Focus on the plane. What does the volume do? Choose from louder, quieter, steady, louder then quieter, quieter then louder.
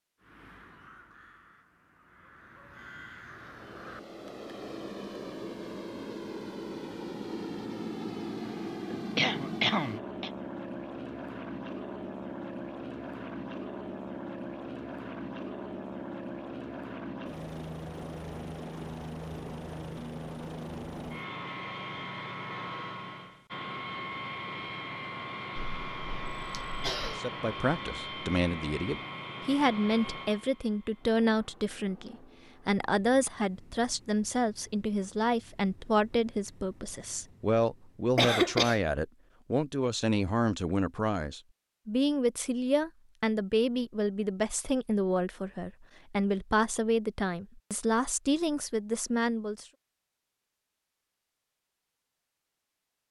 quieter.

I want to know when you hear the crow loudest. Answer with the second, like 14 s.
3 s.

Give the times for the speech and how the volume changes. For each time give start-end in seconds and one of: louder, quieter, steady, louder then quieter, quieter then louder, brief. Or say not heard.
27.1-49.6 steady.